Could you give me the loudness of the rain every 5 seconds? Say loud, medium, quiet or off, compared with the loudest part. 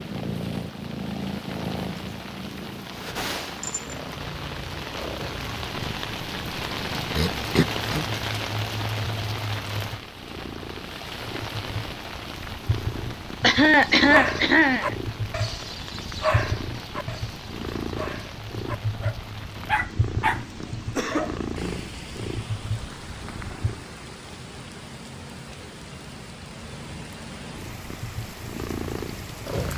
medium, loud, medium, medium, medium, medium.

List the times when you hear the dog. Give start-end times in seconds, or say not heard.
13.7-21.4.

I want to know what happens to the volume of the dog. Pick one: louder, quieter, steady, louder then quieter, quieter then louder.
quieter then louder.